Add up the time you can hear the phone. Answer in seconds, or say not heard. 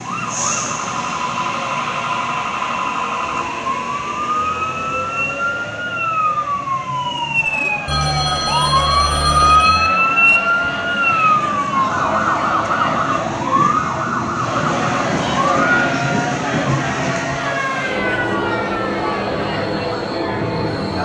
2 s.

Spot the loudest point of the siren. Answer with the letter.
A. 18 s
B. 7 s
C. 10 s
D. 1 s
C.